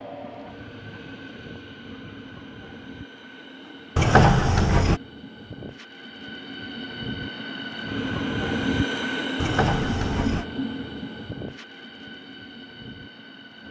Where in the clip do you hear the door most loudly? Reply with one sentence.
The loudest moment of the door is at 4 seconds.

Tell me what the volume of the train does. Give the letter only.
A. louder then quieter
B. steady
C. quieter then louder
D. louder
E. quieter
A.